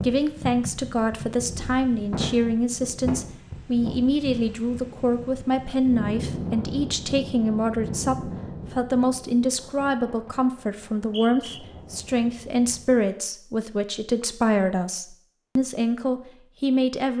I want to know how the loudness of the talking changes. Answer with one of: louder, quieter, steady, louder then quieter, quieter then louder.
steady.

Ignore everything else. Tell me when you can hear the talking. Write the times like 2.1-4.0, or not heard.
0.0-17.1.